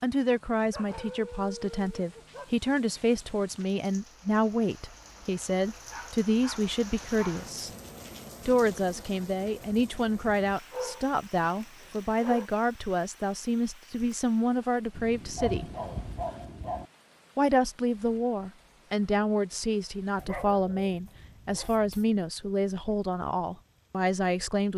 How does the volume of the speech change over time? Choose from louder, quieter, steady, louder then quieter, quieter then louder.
steady.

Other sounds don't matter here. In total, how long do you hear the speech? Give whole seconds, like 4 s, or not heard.
22 s.